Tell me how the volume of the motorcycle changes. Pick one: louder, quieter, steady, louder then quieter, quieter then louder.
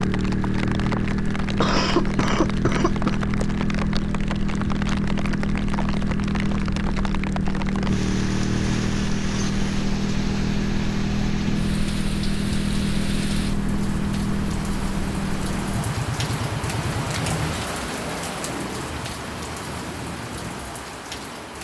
steady.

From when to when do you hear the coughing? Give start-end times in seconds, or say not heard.
1.6-3.2.